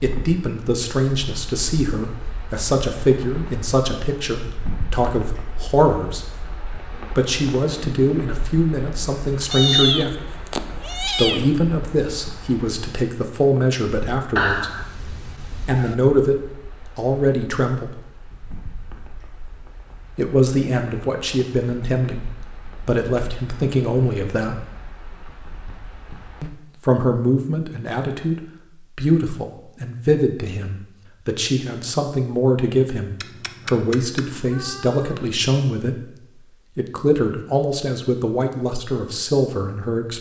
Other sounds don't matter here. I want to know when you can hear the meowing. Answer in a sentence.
The meowing can be heard from 9.5 to 11.4 s, from 14.3 to 15.9 s and from 33.2 to 35.2 s.